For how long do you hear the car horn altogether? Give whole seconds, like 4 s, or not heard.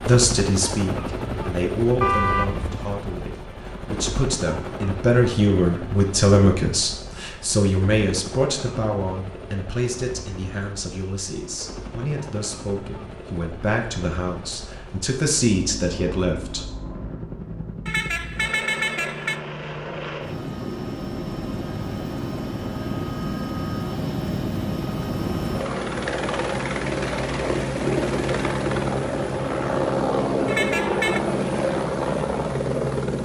3 s.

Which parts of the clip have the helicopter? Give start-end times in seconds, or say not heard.
0.0-33.2.